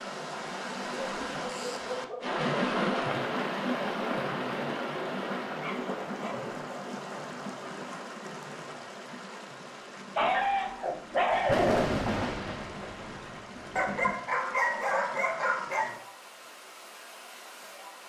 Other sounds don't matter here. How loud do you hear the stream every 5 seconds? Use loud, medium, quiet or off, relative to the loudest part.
loud, medium, quiet, quiet.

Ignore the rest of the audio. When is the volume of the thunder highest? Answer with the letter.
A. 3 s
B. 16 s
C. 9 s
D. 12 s
D.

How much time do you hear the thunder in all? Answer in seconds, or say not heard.
3 s.